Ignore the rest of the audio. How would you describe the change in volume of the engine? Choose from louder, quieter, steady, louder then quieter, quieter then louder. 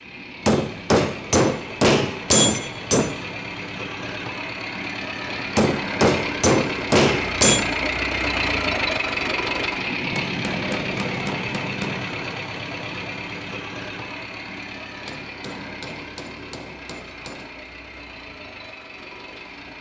louder then quieter.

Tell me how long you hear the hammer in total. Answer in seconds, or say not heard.
9 s.